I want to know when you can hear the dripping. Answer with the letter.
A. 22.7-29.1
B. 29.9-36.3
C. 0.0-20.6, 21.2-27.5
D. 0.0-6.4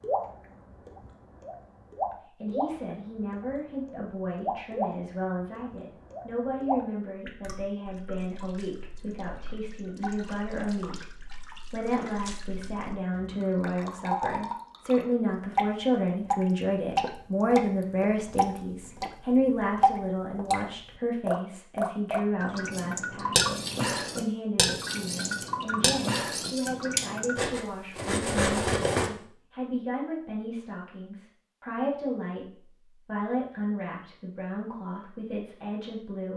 C.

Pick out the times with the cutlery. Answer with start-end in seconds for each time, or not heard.
22.7-29.1.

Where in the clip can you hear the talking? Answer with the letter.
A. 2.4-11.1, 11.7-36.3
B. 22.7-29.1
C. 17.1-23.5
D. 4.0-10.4
A.